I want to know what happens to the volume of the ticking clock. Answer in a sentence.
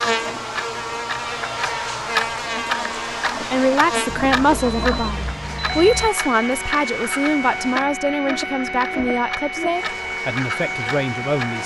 The volume of the ticking clock goes down.